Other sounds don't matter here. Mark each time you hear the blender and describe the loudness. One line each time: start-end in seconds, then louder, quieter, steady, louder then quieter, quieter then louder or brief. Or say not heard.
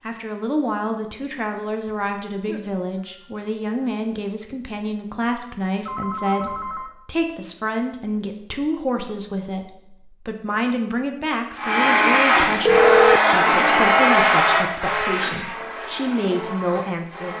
11.6-17.3 quieter.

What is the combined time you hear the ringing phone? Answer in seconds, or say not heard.
3 s.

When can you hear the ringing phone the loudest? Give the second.
13 s.